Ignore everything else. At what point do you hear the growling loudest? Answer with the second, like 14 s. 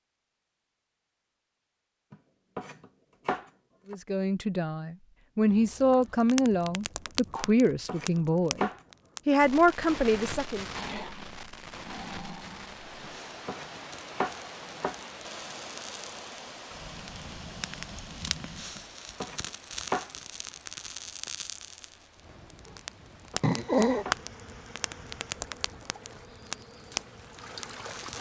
24 s.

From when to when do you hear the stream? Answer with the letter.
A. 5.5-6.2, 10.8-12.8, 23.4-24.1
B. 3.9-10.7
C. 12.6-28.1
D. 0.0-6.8
C.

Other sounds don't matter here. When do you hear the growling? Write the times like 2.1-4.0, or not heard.
5.5-6.2, 10.8-12.8, 23.4-24.1.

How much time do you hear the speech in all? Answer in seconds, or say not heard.
7 s.